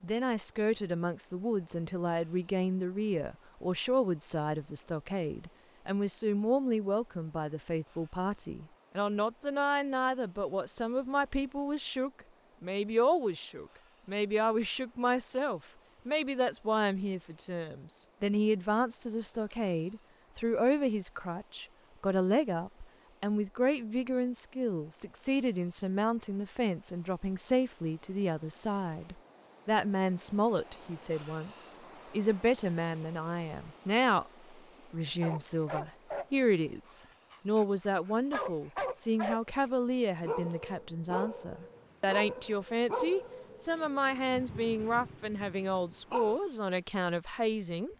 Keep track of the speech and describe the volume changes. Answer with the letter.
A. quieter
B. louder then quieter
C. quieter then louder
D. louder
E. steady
E.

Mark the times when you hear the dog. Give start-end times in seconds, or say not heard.
35.2-39.4, 40.2-46.4.